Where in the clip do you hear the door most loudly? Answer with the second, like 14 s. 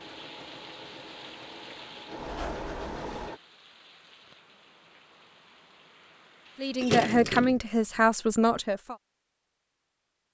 7 s.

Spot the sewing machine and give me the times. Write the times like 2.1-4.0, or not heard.
0.0-3.4.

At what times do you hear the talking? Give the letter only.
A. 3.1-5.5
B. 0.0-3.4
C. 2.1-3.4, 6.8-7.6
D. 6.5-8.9
D.